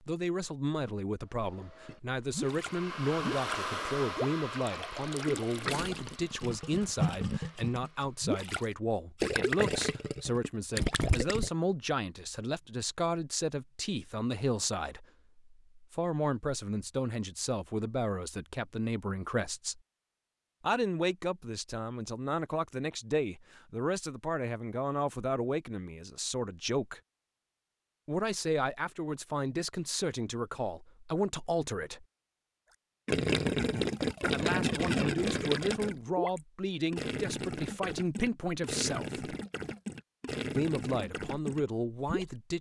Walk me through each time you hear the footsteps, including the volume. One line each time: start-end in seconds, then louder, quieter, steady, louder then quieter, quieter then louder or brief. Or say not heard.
not heard.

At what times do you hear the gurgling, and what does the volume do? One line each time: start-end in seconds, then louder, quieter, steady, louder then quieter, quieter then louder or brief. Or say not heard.
1.9-11.5 louder
33.0-42.4 quieter.